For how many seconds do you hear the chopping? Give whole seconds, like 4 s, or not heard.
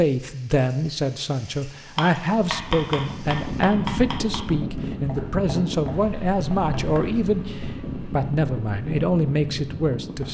5 s.